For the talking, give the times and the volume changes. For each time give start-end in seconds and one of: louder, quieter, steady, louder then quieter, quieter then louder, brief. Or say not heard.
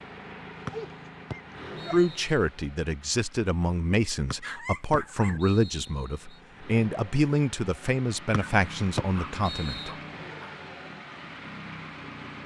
1.9-9.9 steady.